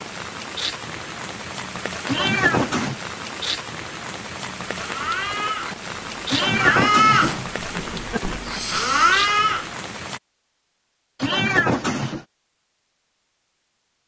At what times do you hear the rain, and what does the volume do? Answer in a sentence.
You can hear the rain from 0.0 to 10.2 s, at a steady volume.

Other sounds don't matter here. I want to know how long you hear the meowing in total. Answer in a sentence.
You can hear the meowing for 3 seconds altogether.